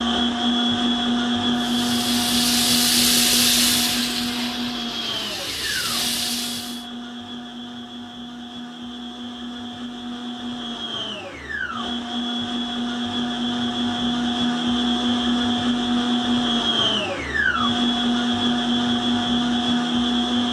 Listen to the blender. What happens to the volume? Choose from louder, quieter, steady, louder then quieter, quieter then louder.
quieter then louder.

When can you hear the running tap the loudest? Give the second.
3 s.